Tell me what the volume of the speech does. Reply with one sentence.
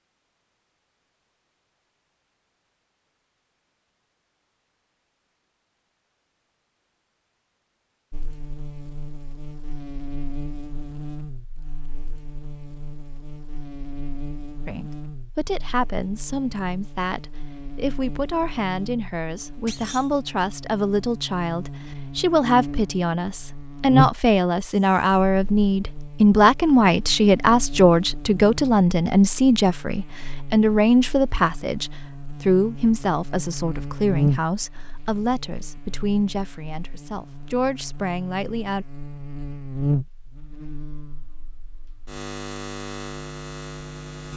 The loudness of the speech goes up, then down.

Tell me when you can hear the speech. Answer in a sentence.
The speech can be heard from 14.7 to 38.9 s.